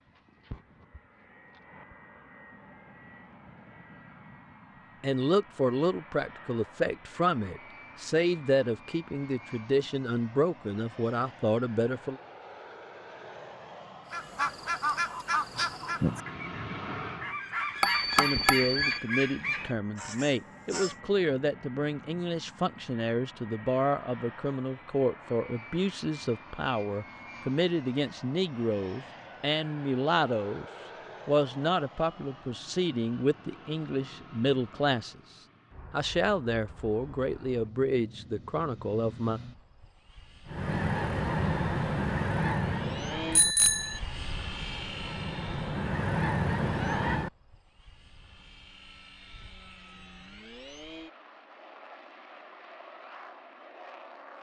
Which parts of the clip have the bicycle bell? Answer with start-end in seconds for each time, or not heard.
17.8-19.0, 43.4-44.0.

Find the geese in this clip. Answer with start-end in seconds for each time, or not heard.
14.1-20.9, 40.5-47.3.